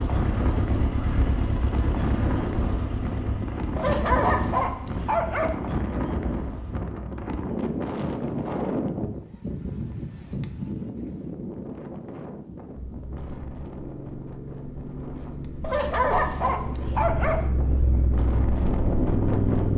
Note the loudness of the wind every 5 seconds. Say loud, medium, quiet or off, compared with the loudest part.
loud, loud, medium, loud.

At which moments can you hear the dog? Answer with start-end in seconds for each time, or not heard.
3.8-5.6, 15.6-17.4.